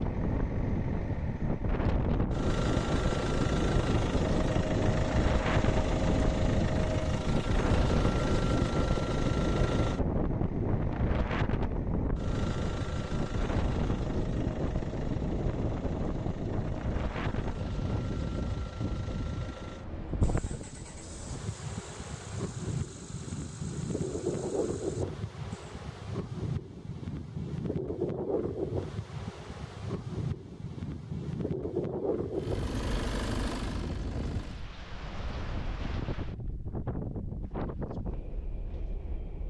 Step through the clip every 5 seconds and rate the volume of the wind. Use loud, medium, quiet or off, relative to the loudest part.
loud, loud, loud, medium, medium, medium, medium, medium.